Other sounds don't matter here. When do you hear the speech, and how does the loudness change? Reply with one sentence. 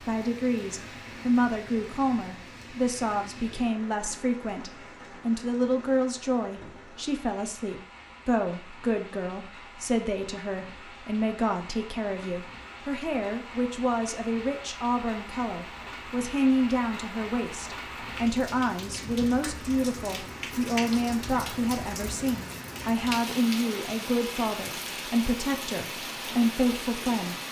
The speech can be heard from 0.0 to 27.4 s, at a steady volume.